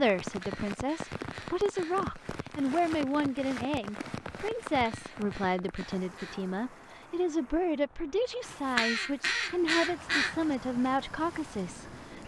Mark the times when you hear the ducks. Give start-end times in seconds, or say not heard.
0.2-2.0, 4.8-6.4, 8.4-10.3.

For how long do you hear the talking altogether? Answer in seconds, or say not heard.
12 s.